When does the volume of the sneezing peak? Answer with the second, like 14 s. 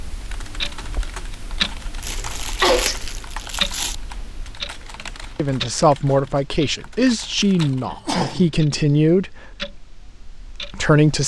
3 s.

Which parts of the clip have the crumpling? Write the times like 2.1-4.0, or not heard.
2.0-4.0.